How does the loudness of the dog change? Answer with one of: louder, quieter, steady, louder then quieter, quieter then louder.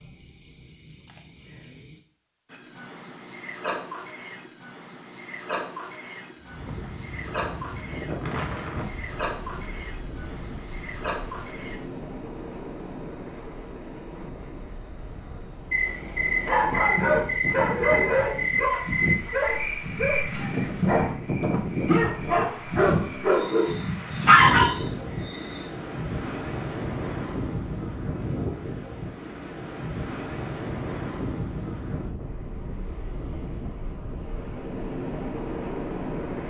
quieter then louder.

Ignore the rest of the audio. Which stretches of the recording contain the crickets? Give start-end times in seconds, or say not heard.
0.0-25.7.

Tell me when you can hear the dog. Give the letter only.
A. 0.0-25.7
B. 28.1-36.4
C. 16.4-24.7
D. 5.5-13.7
C.